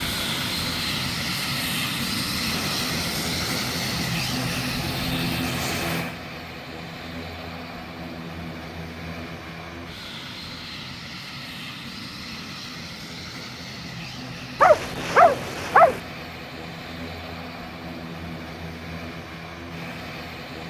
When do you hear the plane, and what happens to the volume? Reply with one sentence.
The plane can be heard from 0.0 to 20.6 s, getting quieter.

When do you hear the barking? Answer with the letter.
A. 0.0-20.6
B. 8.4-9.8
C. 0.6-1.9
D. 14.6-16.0
D.